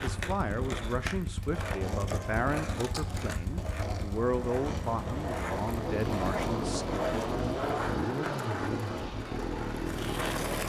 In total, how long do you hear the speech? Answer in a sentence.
The speech can be heard for 7 seconds in total.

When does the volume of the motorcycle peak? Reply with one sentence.
The loudest moment of the motorcycle is at 8 seconds.